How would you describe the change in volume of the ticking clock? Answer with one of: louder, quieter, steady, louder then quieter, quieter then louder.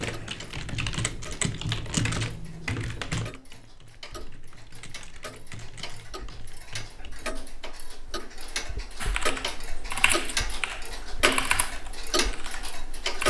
louder.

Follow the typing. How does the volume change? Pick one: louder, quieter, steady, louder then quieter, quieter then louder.
quieter then louder.